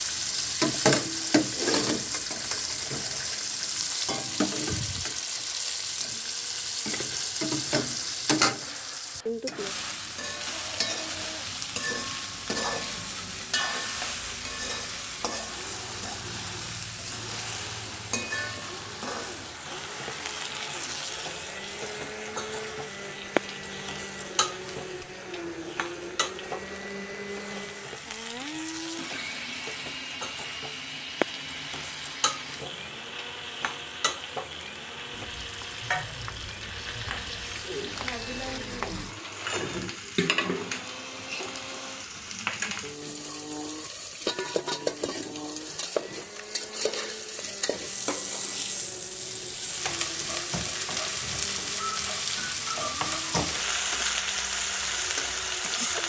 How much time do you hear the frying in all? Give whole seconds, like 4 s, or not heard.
56 s.